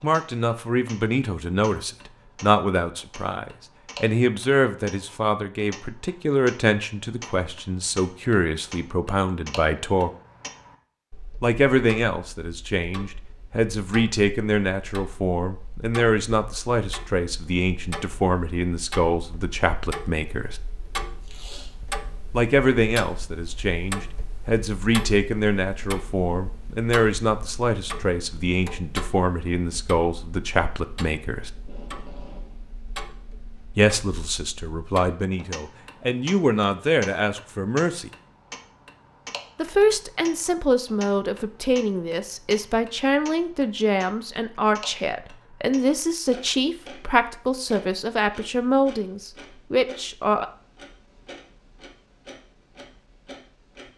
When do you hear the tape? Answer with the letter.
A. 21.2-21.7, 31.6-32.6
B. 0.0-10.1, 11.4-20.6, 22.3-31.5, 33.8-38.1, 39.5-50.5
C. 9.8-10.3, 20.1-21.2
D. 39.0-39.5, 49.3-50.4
A.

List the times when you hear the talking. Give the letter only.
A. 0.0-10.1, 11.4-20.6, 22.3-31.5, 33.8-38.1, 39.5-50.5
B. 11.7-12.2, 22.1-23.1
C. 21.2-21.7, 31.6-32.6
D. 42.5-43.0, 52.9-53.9
A.